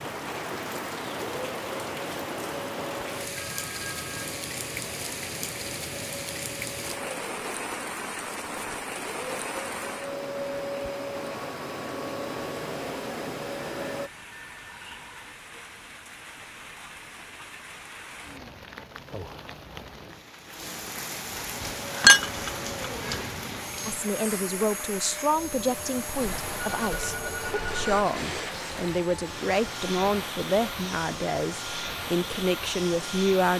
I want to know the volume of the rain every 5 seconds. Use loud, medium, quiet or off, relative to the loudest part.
loud, loud, medium, medium, loud, loud, medium.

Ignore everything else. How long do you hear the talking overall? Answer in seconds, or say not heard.
10 s.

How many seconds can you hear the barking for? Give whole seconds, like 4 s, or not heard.
not heard.